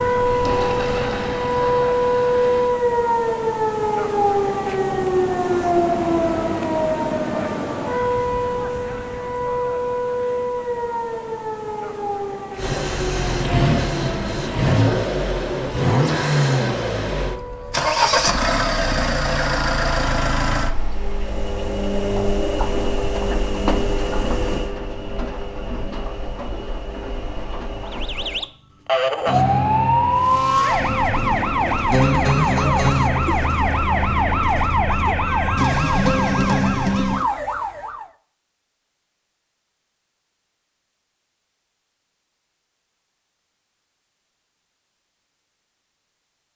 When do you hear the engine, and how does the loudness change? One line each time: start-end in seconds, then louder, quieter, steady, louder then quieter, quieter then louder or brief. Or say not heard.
0.2-2.7 brief
12.6-28.4 quieter.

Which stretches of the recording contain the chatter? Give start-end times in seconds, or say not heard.
not heard.